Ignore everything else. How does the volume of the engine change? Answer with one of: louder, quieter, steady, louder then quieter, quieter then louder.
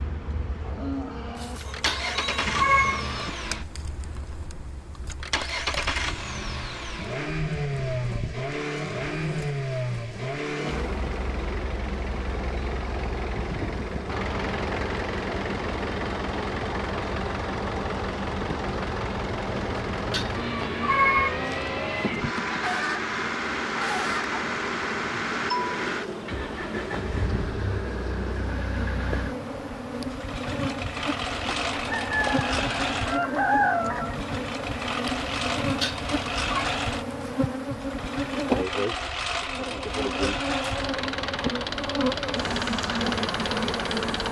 steady.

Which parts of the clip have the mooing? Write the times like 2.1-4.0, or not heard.
not heard.